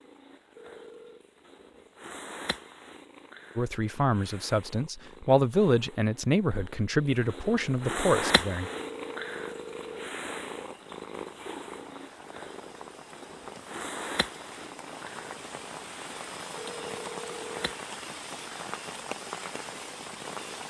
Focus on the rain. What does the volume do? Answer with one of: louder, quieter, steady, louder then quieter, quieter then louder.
louder.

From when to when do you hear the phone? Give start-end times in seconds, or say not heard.
0.6-1.2, 8.6-10.2, 16.6-17.6.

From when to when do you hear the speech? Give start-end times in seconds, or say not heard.
3.5-8.7.